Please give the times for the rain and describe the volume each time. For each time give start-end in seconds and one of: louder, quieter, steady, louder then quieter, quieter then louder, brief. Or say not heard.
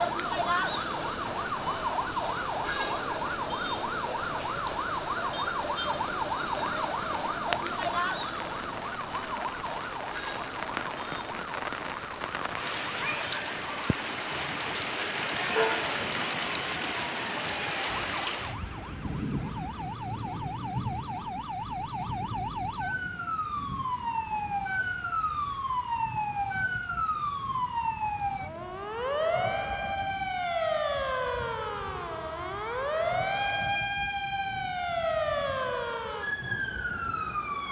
0.0-37.6 louder then quieter.